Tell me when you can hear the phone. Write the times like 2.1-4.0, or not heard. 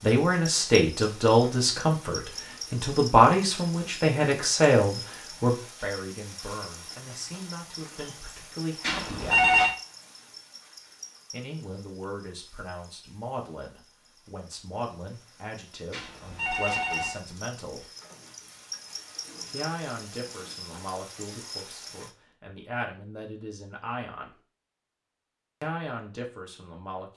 8.8-9.8, 15.9-17.2.